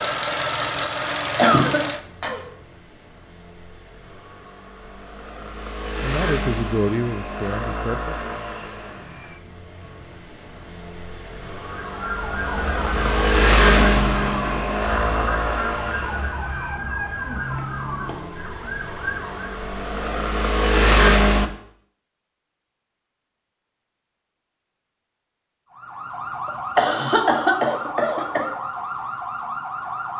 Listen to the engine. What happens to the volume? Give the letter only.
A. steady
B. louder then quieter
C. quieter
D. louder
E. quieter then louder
E.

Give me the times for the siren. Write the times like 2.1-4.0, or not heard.
11.8-19.4, 25.7-30.1.